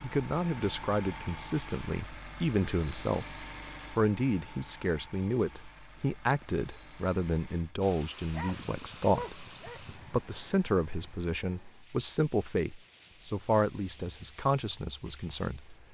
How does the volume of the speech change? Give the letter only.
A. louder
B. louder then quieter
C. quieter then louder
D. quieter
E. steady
E.